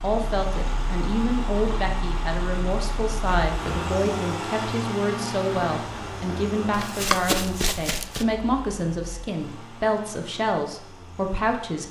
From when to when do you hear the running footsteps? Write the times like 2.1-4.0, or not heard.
5.7-8.2.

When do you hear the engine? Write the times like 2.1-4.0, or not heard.
0.0-11.8.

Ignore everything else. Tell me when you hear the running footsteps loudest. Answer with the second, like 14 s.
7 s.